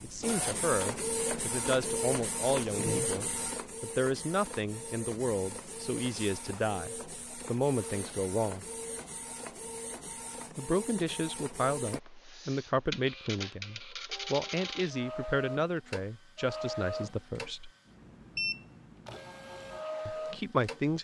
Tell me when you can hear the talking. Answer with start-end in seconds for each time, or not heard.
0.0-8.7, 10.6-17.7, 20.1-21.0.